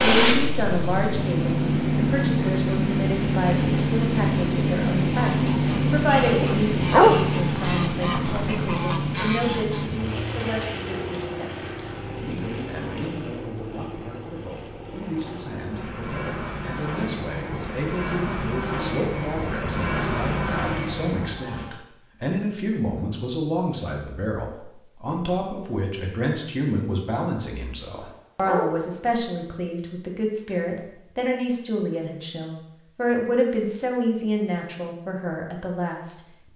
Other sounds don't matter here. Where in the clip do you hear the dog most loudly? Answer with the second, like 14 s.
7 s.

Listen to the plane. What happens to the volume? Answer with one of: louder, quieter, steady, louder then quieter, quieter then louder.
quieter then louder.